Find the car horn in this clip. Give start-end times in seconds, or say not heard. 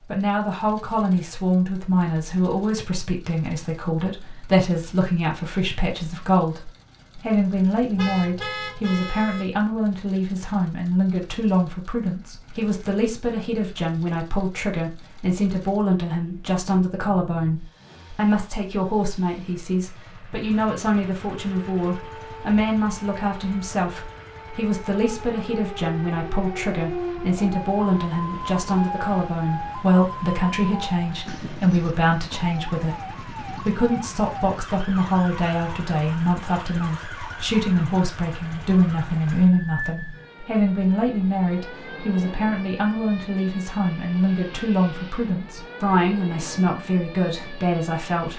8.0-9.4.